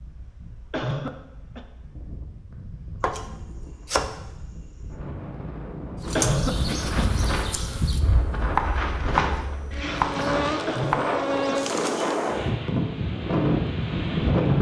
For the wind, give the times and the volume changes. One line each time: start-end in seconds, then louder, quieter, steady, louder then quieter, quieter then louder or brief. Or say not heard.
0.0-14.5 louder.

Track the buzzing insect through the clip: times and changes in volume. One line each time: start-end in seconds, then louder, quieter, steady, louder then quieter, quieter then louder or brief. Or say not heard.
6.0-12.5 quieter then louder.